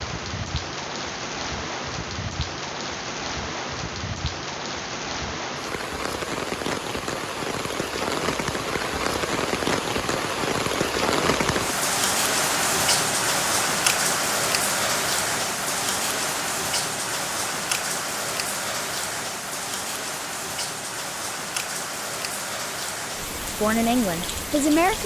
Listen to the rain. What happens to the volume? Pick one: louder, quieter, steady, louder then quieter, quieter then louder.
louder then quieter.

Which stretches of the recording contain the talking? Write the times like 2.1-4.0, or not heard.
23.4-25.0.